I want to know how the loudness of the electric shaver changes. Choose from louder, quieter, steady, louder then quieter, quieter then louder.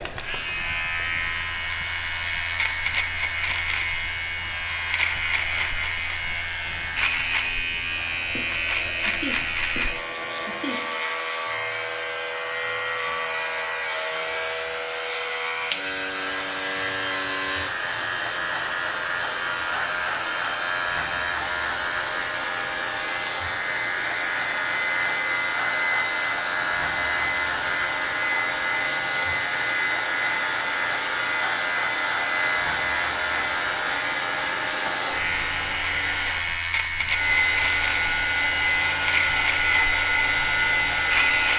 steady.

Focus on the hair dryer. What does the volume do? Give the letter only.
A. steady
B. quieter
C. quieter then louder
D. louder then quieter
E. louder
E.